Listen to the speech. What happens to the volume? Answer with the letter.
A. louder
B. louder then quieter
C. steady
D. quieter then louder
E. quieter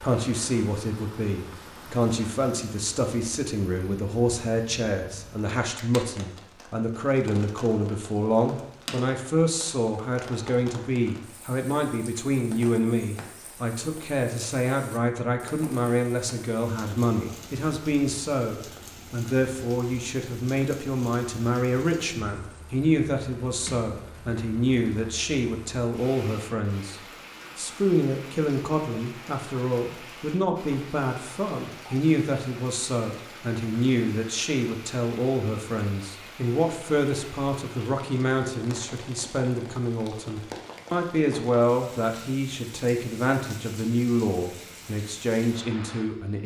C.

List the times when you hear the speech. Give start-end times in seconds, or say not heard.
0.0-46.4.